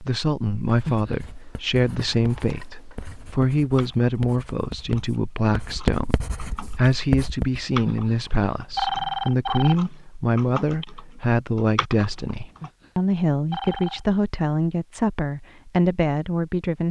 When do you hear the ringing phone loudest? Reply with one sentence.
The volume of the ringing phone peaks at 9 seconds.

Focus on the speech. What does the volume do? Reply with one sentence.
The volume of the speech stays about the same.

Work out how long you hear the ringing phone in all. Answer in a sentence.
The ringing phone can be heard for 4 seconds in total.